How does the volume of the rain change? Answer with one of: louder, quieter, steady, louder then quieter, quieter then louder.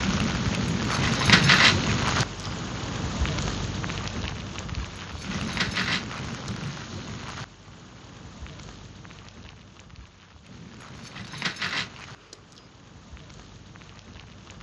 quieter.